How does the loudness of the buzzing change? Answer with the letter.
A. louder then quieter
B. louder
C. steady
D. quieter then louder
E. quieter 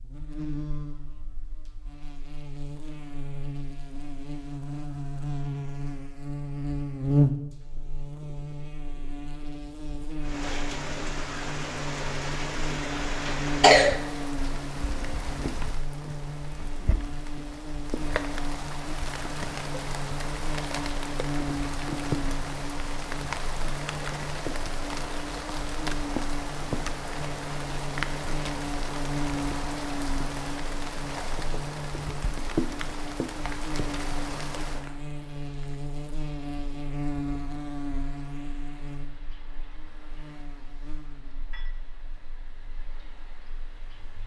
E.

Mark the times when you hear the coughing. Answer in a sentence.
The coughing can be heard from 13.2 to 14.0 s.